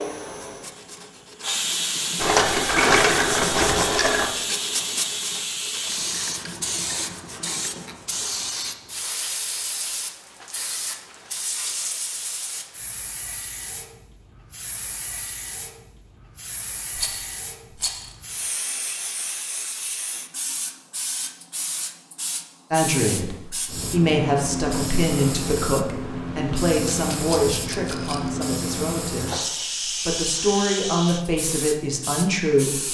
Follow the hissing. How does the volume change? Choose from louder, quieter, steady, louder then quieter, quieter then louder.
quieter then louder.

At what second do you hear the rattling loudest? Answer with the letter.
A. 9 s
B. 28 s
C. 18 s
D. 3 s
D.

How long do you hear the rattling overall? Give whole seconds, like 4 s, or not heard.
5 s.